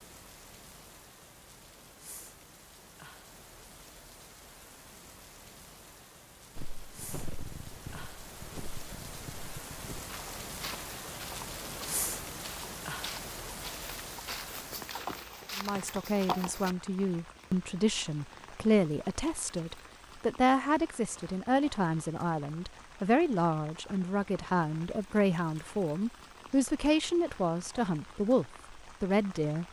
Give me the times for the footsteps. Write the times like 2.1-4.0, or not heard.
6.5-16.7.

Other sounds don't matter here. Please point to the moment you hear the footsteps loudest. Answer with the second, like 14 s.
16 s.